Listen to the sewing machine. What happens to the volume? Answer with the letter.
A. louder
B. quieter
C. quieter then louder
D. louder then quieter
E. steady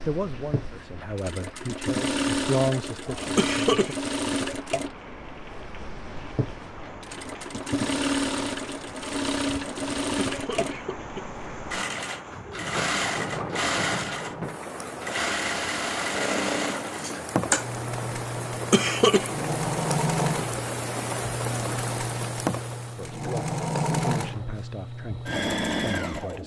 E.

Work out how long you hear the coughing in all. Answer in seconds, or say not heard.
2 s.